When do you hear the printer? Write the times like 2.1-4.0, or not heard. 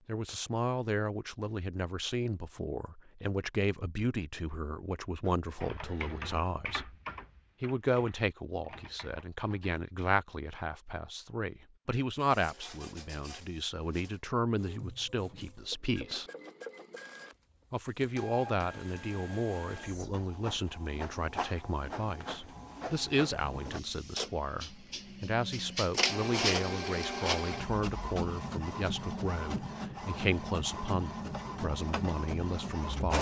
12.2-33.1.